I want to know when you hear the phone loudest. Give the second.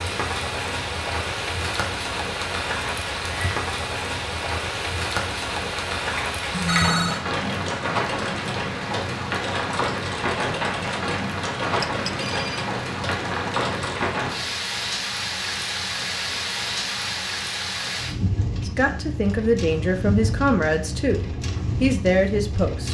7 s.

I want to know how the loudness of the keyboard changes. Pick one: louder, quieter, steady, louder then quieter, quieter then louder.
steady.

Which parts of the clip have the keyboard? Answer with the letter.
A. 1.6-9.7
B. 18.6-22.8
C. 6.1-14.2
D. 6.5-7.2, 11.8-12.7
C.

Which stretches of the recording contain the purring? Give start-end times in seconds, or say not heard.
not heard.